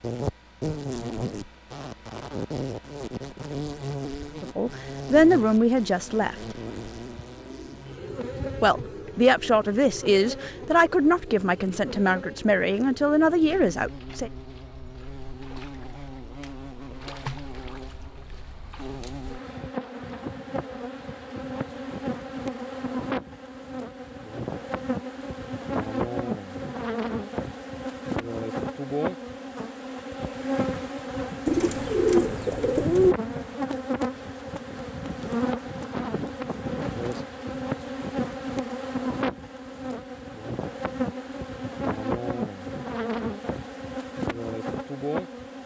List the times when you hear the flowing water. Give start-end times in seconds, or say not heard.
not heard.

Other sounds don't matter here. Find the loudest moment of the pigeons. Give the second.
33 s.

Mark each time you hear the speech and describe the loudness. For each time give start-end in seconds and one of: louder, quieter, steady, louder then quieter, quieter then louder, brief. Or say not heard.
4.4-6.3 brief
8.6-14.3 steady.